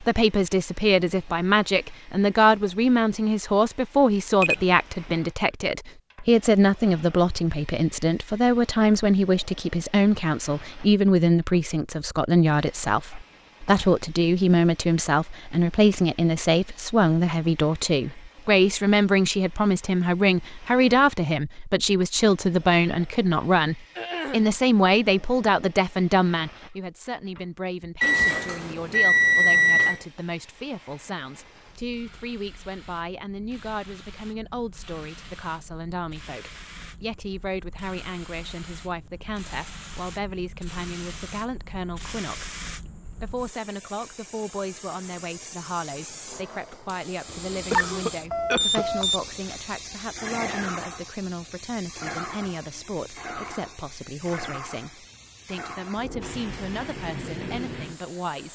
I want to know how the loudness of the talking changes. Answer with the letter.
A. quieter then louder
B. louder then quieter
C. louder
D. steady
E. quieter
E.